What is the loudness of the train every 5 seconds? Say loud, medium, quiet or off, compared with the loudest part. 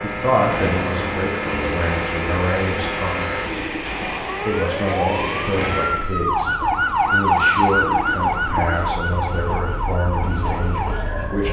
loud, loud, medium.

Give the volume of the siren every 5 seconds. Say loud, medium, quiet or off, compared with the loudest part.
medium, loud, medium.